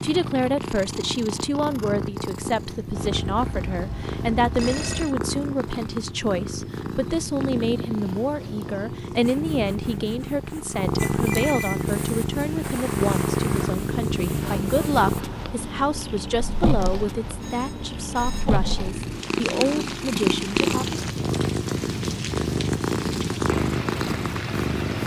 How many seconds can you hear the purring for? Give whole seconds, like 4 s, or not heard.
25 s.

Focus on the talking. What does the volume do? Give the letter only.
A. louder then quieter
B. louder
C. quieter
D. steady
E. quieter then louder
D.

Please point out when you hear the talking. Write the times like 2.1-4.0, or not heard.
0.0-21.0.